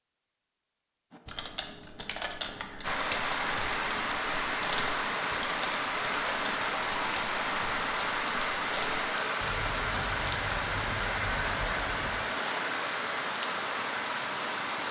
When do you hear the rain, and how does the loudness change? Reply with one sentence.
You can hear the rain from 2.8 to 14.8 s, at a steady volume.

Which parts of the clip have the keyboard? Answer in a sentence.
You can hear the keyboard from 1.1 to 12.2 s.